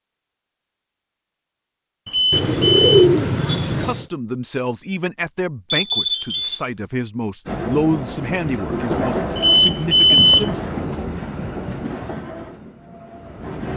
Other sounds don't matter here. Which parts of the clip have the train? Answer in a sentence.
The train can be heard from 7.5 to 13.7 s.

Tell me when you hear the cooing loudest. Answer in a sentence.
The volume of the cooing peaks at 3 seconds.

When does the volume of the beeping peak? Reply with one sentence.
The loudest moment of the beeping is at 10 seconds.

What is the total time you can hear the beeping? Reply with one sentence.
The beeping can be heard for 3 seconds in total.